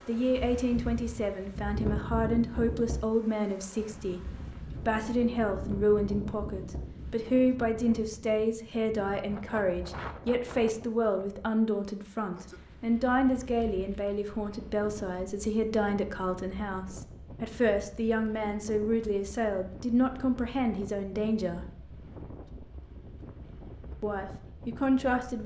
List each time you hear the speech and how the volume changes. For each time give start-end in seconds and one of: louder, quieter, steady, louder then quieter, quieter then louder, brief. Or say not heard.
0.1-21.7 steady
24.0-25.4 brief.